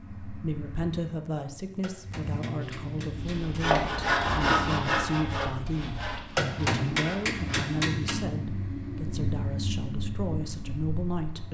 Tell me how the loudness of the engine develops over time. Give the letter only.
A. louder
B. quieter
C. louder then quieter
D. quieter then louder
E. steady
A.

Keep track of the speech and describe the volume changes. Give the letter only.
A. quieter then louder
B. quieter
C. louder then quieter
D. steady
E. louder
D.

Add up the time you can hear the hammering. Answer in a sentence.
The hammering can be heard for 4 seconds in total.